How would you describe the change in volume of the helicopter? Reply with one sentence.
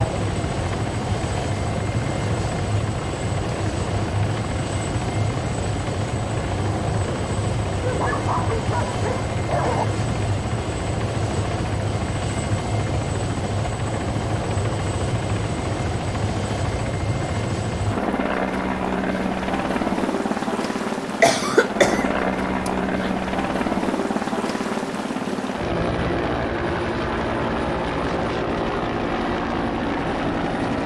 The loudness of the helicopter stays about the same.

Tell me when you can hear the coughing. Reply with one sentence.
The coughing can be heard from 21.2 to 23.1 s.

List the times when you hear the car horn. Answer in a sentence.
You can't hear the car horn here.